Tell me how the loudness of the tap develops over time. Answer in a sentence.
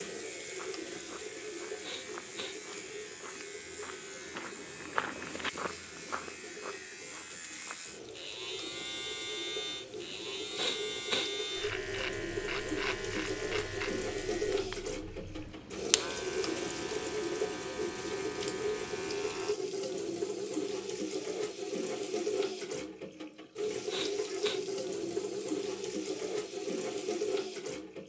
The loudness of the tap goes up.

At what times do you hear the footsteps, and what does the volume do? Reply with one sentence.
You can hear the footsteps from 0.4 to 8.0 s, getting louder then quieter.